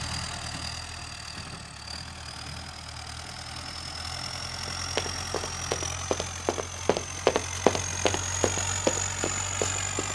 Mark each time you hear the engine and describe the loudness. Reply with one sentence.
The engine can be heard from 0.0 to 10.0 s, getting louder.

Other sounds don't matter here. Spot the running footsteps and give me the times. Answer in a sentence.
You can hear the running footsteps from 4.7 to 10.0 s.